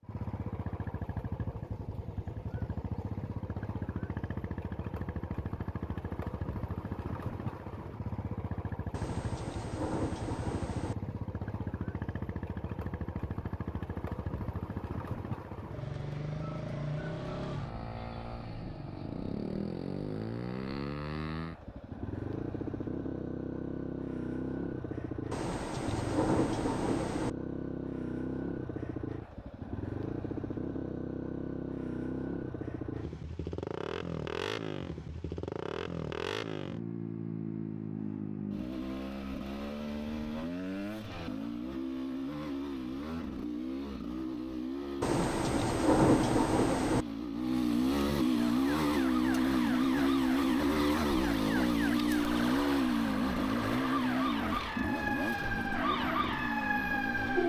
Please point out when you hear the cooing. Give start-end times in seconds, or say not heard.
not heard.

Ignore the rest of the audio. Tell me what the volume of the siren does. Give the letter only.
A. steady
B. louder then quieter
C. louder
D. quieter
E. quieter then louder
C.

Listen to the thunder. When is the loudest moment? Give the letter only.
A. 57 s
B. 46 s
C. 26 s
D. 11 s
B.